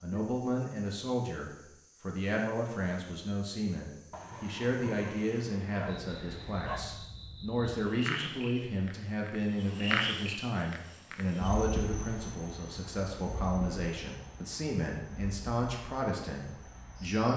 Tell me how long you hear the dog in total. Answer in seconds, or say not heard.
3 s.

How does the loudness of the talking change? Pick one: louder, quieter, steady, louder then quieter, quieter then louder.
steady.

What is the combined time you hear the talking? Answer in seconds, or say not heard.
17 s.